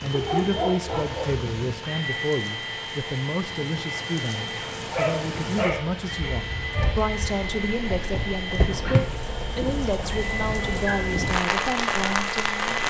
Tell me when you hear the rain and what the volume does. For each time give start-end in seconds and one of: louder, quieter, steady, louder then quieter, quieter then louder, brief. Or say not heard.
0.0-12.8 louder.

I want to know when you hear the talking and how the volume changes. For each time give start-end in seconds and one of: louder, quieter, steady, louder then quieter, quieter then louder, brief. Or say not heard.
0.0-12.8 steady.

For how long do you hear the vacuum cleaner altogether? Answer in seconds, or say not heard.
13 s.